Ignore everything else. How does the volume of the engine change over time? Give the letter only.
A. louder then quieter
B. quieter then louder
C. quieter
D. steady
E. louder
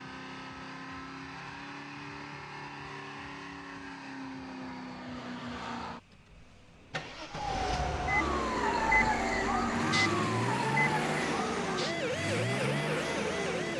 E.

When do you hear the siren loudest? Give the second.
9 s.